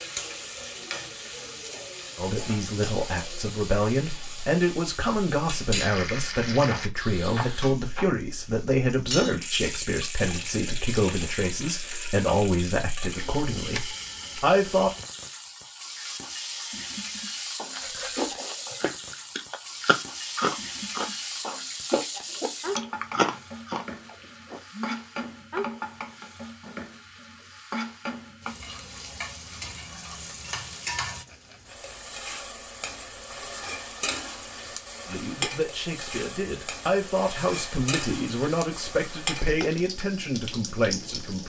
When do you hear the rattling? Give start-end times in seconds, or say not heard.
6.7-8.2, 17.8-18.4, 31.1-31.9.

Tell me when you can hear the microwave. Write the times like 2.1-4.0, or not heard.
not heard.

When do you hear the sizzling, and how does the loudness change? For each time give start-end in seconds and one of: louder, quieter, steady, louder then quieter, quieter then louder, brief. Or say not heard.
0.0-41.4 steady.